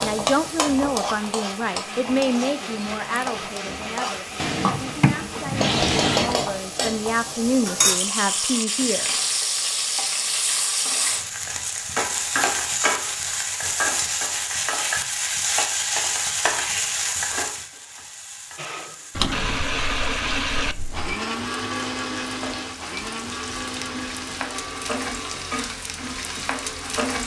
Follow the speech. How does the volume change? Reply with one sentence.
The loudness of the speech goes down, then up.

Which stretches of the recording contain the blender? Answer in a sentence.
You can hear the blender from 0.2 to 7.7 s and from 18.6 to 27.2 s.